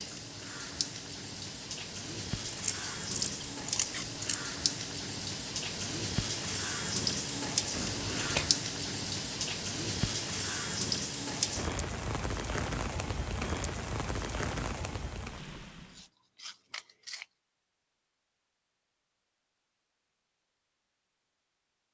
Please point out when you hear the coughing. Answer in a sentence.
You can't hear the coughing here.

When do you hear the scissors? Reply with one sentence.
You can hear the scissors from 2.5 to 4.4 s, from 7.7 to 8.5 s and from 15.9 to 17.2 s.